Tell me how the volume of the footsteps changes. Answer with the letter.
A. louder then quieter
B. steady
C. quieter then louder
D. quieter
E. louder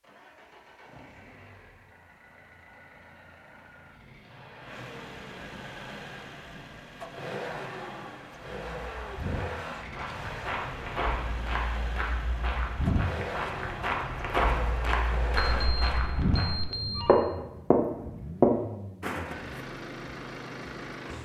E.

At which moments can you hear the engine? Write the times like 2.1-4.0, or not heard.
0.0-21.2.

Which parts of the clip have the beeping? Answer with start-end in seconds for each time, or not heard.
15.3-17.1.